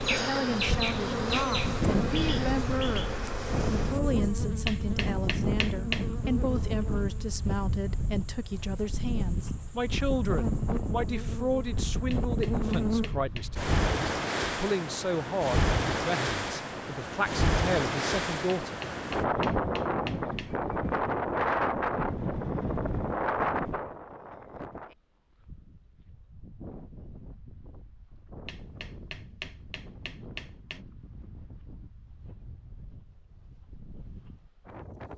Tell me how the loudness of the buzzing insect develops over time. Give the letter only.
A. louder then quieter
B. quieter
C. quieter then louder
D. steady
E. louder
C.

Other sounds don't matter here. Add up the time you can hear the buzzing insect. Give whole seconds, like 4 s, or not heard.
13 s.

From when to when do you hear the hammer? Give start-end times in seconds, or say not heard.
4.7-6.0, 12.1-13.6, 18.6-20.6, 28.4-30.8.